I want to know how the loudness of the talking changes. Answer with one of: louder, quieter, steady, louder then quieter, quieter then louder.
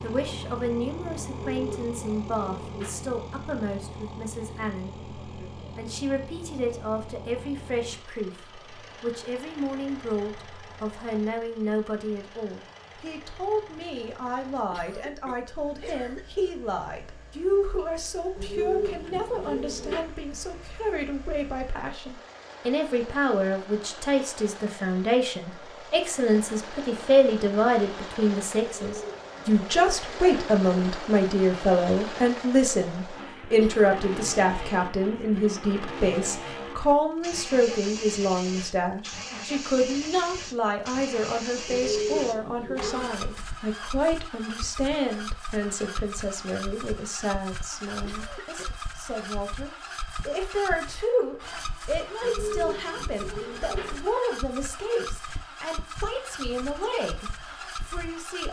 louder then quieter.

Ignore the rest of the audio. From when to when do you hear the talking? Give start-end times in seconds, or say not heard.
0.0-5.0, 5.8-58.4.